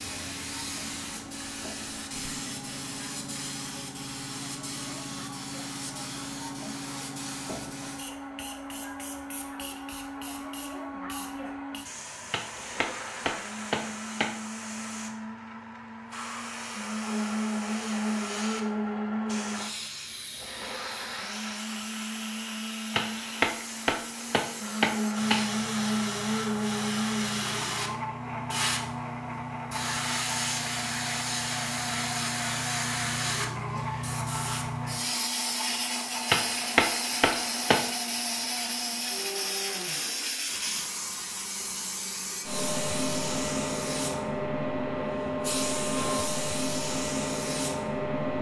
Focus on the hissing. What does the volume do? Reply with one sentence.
The volume of the hissing goes up.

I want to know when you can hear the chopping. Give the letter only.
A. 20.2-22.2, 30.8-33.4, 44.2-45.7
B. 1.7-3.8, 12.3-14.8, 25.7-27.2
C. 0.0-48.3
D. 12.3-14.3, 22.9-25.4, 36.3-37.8
D.